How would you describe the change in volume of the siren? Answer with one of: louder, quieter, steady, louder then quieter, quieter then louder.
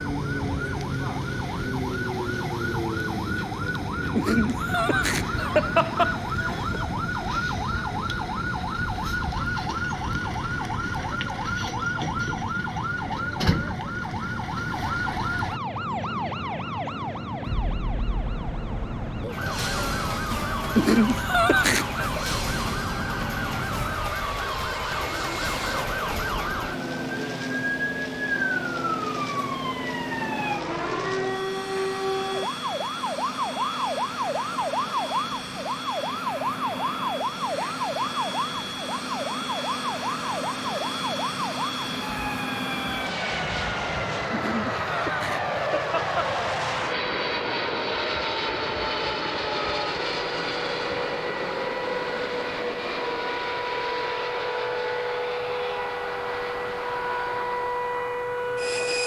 steady.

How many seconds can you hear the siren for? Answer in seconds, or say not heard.
59 s.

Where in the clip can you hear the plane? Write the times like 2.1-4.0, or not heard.
0.0-59.0.